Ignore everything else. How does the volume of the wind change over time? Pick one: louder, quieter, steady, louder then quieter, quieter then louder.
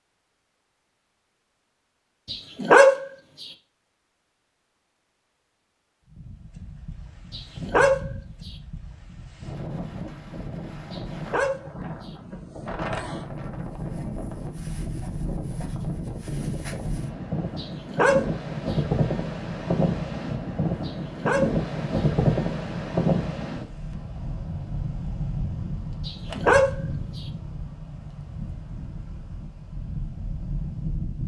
louder then quieter.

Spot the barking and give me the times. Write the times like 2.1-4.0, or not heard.
2.2-3.5, 7.3-8.5, 10.9-12.1, 17.6-18.8, 20.9-22.0, 26.1-27.2.